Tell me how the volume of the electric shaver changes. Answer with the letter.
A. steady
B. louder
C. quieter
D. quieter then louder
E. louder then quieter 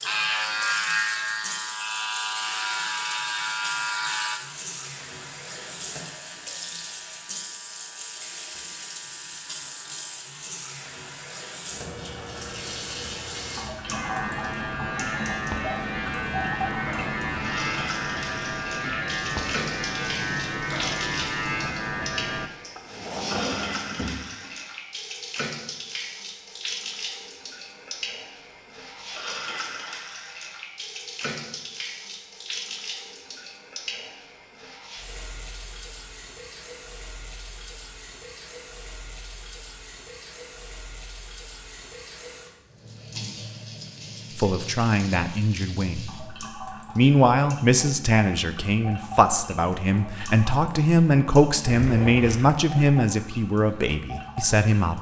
D.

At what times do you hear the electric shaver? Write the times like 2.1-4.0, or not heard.
0.0-22.5.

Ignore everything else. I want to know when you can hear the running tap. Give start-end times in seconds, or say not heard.
0.0-54.9.